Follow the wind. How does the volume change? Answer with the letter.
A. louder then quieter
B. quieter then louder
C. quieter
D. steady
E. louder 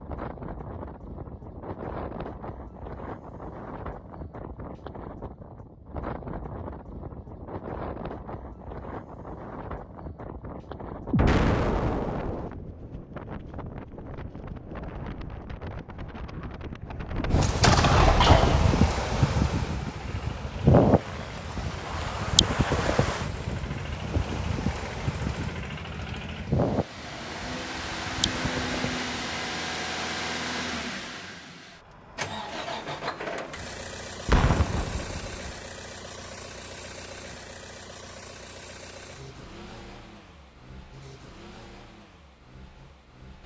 A.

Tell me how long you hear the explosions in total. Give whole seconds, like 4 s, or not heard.
4 s.